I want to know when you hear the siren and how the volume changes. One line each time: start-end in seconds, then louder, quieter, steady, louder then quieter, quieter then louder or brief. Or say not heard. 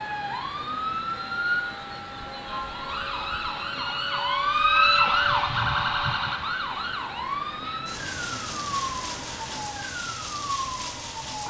0.0-11.4 louder then quieter.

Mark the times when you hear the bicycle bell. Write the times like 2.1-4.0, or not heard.
not heard.